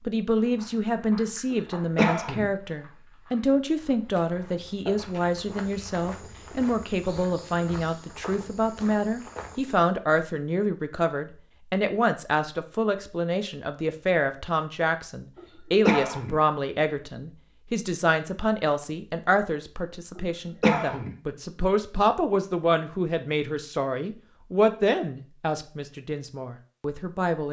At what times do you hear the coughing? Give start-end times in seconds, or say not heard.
1.5-2.5, 15.3-16.4, 20.1-21.1.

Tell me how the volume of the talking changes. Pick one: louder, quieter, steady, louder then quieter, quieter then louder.
steady.